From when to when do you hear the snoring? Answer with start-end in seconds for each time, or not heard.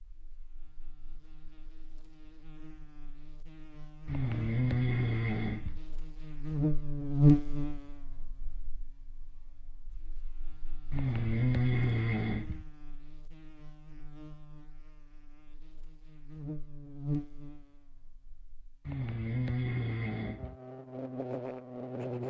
4.0-5.8, 10.9-12.7, 18.9-20.6.